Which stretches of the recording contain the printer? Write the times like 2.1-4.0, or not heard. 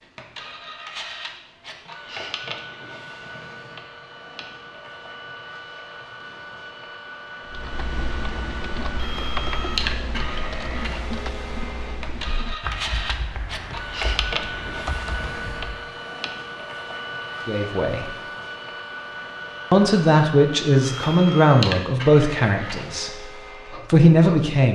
0.0-24.7.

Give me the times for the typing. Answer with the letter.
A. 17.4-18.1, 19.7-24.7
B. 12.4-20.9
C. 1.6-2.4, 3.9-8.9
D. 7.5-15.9
D.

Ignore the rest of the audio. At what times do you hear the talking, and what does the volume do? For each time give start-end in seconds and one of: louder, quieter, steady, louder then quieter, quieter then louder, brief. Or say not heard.
17.4-18.1 brief
19.7-24.7 quieter then louder.